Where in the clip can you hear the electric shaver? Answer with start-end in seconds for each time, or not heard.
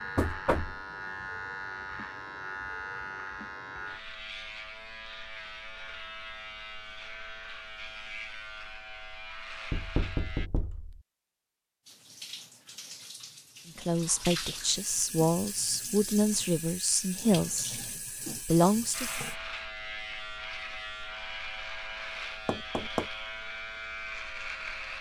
0.0-10.5, 18.9-24.9.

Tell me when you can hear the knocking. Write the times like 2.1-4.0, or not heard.
0.1-0.8, 9.7-11.0, 22.4-23.1.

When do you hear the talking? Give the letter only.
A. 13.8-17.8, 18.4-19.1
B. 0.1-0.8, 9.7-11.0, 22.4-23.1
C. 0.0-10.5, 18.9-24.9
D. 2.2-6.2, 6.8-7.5
A.